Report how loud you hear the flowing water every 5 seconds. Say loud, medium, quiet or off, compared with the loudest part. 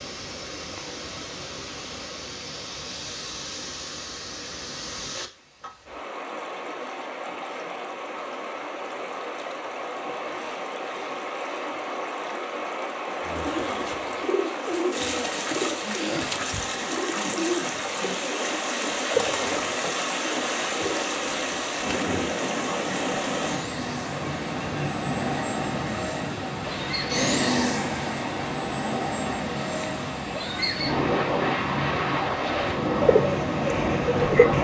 medium, medium, loud, loud, loud, loud, medium.